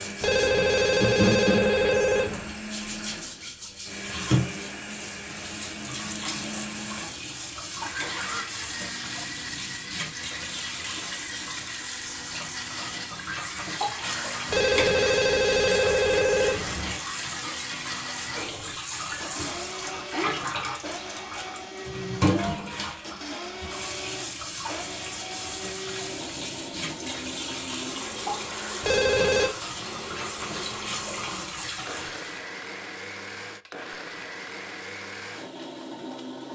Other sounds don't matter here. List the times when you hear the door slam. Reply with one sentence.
The door slam can't be heard in this clip.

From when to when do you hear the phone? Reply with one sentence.
The phone can be heard from 0.2 to 2.5 s, from 14.5 to 16.9 s and from 28.8 to 29.5 s.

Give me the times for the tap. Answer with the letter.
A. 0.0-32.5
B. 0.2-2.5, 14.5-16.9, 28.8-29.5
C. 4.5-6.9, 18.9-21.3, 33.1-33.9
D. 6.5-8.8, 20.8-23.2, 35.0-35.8
A.